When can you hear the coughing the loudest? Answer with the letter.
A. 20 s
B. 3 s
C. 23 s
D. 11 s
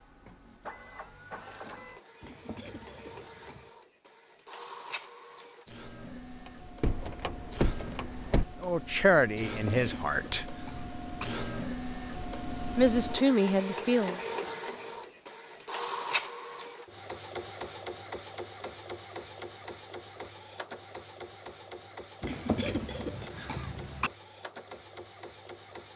C.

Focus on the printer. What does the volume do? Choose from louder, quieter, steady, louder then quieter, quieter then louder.
louder then quieter.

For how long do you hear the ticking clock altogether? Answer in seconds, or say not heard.
not heard.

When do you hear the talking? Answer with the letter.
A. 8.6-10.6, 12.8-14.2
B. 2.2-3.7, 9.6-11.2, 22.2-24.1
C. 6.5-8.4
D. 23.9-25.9
A.